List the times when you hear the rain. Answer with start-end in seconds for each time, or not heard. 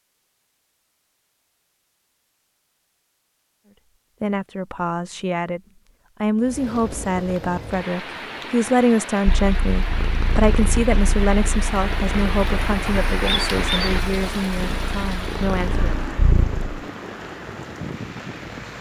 6.3-18.7.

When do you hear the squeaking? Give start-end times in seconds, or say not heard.
13.2-13.9.